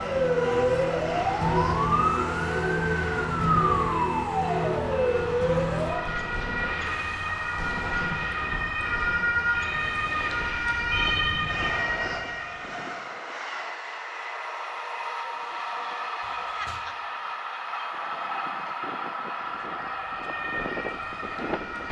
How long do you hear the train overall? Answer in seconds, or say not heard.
22 s.